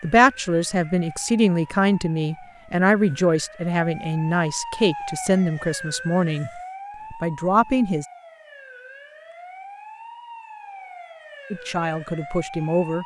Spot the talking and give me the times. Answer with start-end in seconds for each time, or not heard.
0.0-8.1, 11.5-13.0.